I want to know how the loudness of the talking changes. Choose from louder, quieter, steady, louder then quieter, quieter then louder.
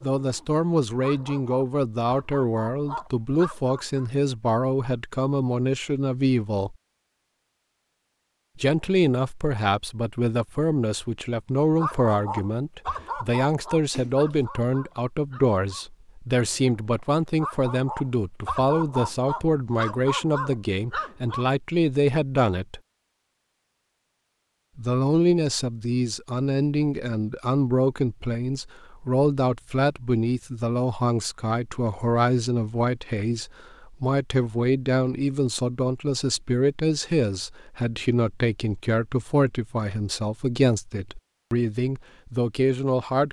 steady.